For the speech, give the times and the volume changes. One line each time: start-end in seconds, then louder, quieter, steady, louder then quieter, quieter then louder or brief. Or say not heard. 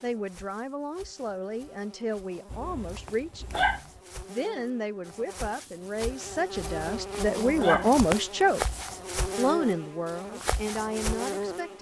0.0-8.7 louder
9.3-11.7 brief.